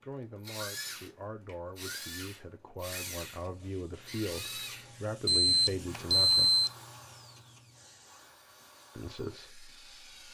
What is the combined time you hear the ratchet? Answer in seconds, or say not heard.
not heard.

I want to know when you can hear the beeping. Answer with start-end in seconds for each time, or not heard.
5.2-6.7.